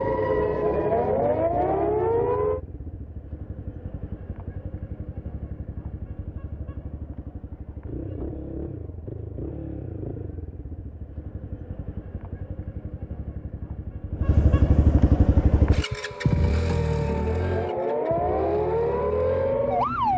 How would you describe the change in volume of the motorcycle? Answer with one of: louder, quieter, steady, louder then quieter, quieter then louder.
louder.